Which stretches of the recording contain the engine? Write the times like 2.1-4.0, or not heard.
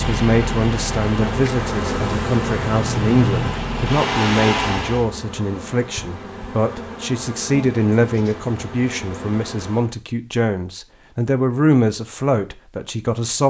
0.0-5.0.